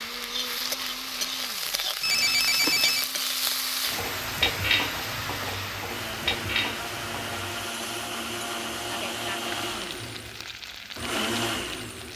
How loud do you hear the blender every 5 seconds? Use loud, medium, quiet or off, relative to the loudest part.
medium, loud, loud.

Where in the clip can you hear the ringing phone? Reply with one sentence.
The ringing phone can be heard from 2.0 to 3.0 s.